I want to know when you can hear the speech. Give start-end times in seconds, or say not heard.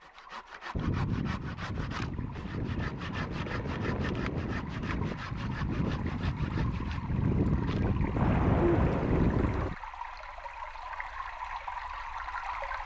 not heard.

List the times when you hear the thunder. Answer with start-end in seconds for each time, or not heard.
8.2-9.7.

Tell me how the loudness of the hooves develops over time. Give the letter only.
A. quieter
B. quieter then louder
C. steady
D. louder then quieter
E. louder
E.